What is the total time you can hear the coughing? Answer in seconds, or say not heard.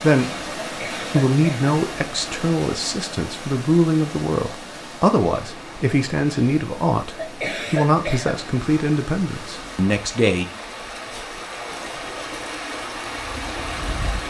2 s.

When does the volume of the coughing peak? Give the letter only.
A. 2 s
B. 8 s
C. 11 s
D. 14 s
B.